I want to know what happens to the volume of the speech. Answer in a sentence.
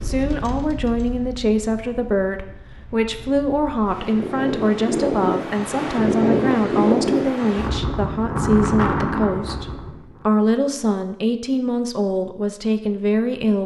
The volume of the speech stays about the same.